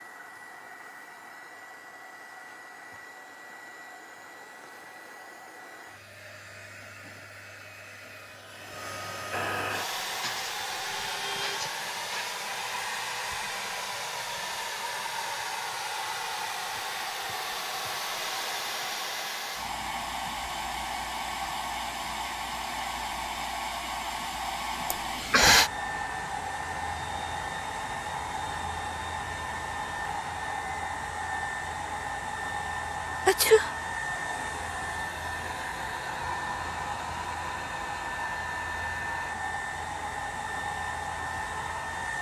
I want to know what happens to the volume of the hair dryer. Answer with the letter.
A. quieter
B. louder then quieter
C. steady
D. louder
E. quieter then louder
D.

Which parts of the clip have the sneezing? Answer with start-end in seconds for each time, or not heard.
10.2-12.3, 24.9-25.7, 33.2-33.8.